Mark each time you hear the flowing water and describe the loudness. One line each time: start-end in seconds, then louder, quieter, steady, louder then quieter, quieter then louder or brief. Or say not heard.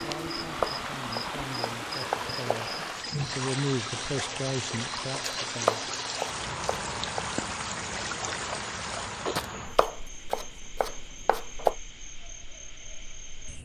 0.0-9.4 steady.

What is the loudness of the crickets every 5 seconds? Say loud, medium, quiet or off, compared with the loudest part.
loud, loud, medium.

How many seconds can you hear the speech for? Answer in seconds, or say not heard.
5 s.